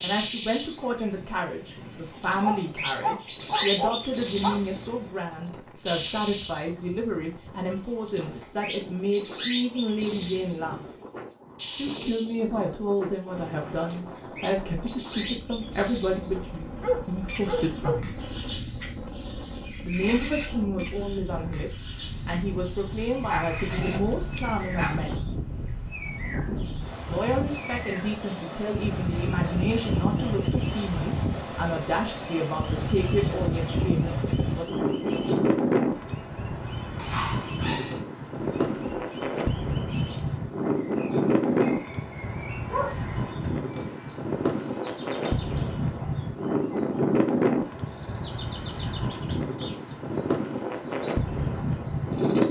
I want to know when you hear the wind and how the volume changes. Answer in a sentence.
You can hear the wind from 0.0 to 52.4 s, getting louder.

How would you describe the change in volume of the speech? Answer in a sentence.
The volume of the speech stays about the same.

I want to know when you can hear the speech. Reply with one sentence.
You can hear the speech from 0.0 to 10.8 s, from 11.8 to 18.1 s, from 19.8 to 25.2 s and from 27.1 to 34.8 s.